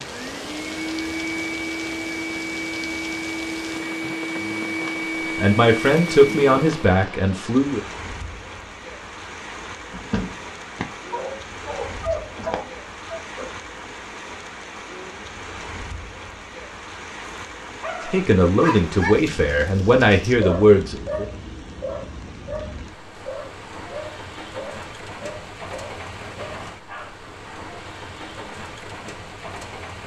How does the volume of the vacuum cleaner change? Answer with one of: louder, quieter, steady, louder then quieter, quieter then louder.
steady.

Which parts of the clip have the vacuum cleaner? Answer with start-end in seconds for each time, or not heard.
0.0-6.8.